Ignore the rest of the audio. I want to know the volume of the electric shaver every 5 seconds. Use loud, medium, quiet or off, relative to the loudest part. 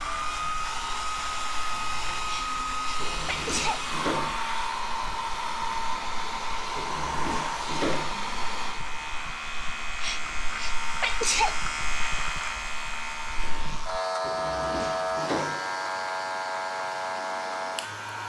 medium, medium, loud, loud.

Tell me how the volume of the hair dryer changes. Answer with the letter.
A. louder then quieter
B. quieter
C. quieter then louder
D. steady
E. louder
B.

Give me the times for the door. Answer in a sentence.
The door can be heard from 3.0 to 4.4 s, from 6.8 to 8.2 s and from 14.2 to 15.7 s.